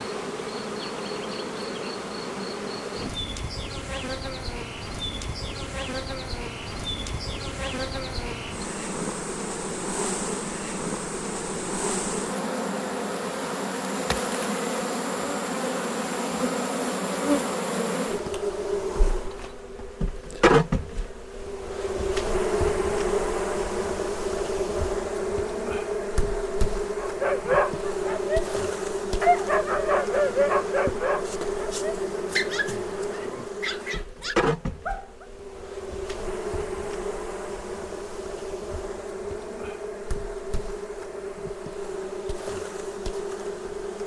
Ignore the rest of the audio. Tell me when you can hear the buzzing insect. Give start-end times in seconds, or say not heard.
0.0-44.0.